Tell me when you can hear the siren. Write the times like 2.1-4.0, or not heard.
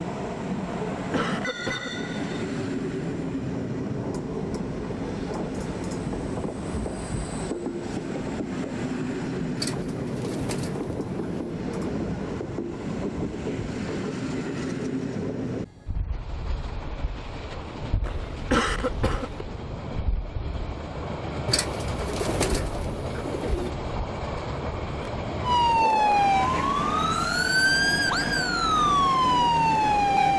25.4-30.3.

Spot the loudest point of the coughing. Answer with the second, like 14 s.
19 s.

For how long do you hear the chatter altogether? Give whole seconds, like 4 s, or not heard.
not heard.